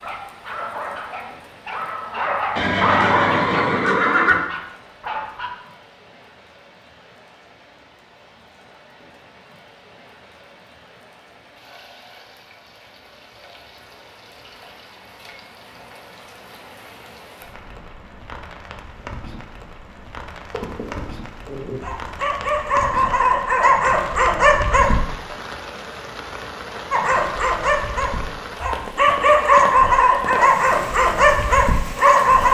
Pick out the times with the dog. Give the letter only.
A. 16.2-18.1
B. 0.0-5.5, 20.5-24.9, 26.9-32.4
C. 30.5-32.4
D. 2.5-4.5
B.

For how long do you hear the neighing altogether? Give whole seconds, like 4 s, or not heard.
2 s.